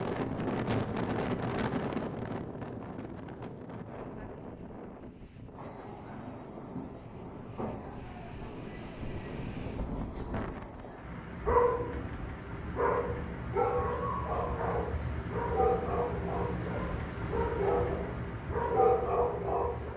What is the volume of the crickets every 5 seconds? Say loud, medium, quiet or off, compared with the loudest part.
off, medium, loud, loud.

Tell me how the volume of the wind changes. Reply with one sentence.
The loudness of the wind goes down, then up.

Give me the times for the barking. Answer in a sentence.
The barking can be heard from 11.4 to 19.9 s.